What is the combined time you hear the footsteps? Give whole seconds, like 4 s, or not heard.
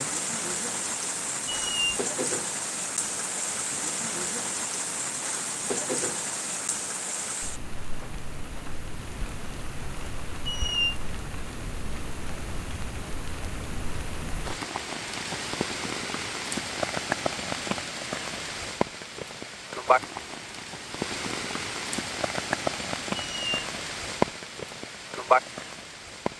not heard.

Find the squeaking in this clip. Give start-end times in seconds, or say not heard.
1.4-1.9, 10.4-10.9, 23.1-23.6.